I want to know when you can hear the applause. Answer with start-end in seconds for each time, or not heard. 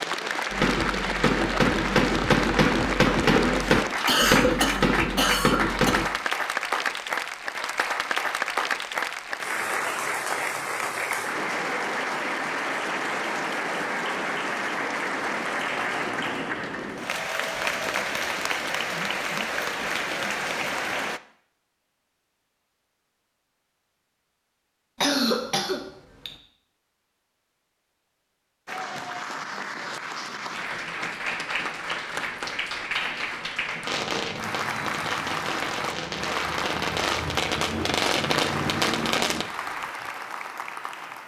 0.0-21.2, 28.6-41.2.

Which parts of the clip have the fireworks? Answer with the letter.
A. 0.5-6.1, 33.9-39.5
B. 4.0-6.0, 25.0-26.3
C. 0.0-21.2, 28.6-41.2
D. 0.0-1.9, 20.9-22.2
A.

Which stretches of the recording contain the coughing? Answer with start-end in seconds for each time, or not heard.
4.0-6.0, 25.0-26.3.